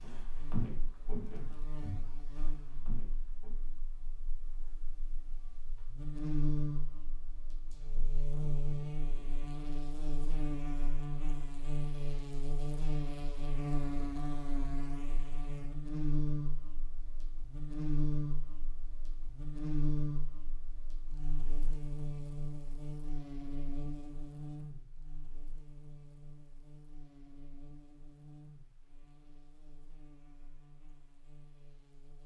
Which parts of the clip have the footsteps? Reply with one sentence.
You can hear the footsteps from 0.0 to 3.5 s.